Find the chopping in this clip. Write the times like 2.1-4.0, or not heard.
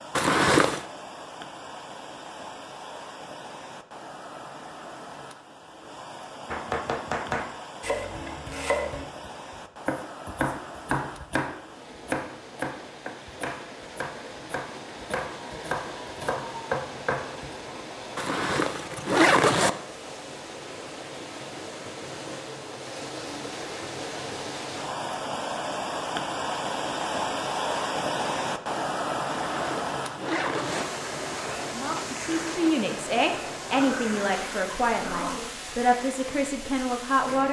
6.5-17.6.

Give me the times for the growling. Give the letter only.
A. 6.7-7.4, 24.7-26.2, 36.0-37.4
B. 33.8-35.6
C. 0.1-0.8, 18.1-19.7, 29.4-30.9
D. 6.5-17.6
B.